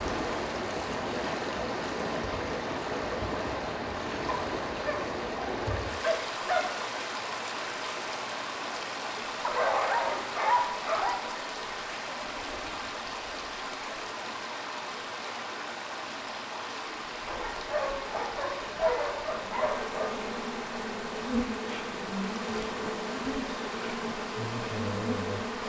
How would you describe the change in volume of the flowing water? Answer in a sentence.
The volume of the flowing water goes down.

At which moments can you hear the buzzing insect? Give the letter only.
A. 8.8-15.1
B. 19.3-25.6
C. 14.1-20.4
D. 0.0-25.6
B.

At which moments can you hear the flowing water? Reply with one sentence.
You can hear the flowing water from 0.0 to 25.6 s.